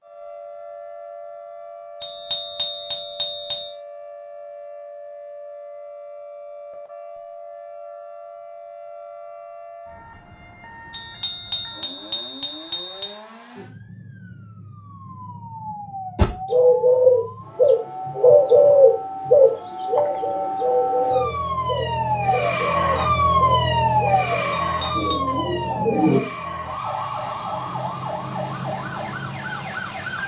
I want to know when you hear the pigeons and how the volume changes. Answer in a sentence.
You can hear the pigeons from 16.1 to 26.2 s, getting quieter.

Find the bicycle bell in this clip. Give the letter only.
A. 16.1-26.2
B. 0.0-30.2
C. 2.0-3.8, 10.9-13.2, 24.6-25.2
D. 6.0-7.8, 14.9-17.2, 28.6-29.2
C.